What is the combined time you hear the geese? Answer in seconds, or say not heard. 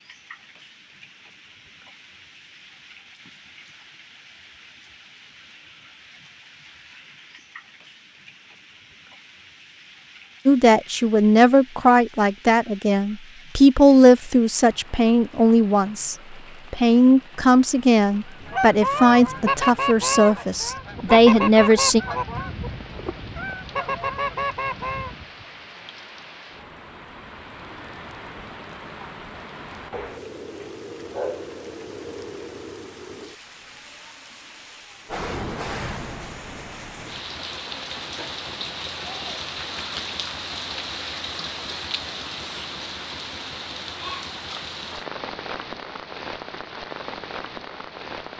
7 s.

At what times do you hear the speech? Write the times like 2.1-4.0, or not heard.
10.4-22.0.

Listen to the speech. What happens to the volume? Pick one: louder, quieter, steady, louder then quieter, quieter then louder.
steady.